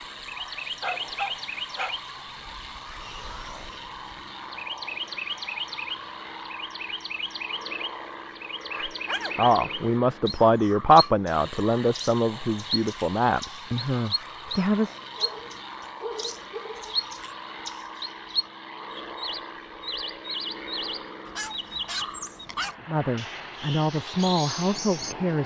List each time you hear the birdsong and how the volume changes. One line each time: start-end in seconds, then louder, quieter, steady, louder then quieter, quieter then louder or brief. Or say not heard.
0.0-25.1 steady.